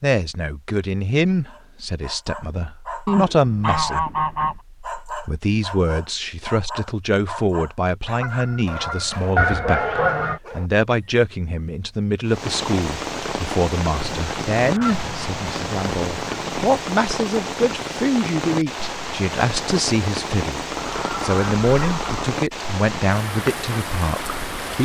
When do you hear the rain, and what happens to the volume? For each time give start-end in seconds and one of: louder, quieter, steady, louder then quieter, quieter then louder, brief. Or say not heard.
12.2-24.7 steady.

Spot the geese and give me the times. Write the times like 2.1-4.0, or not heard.
3.0-4.5, 8.2-10.4, 14.1-16.6, 20.8-22.3.